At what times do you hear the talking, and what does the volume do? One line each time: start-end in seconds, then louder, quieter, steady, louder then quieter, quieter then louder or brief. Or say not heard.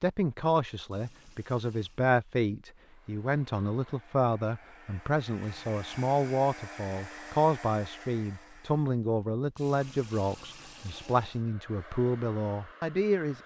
0.0-13.4 steady.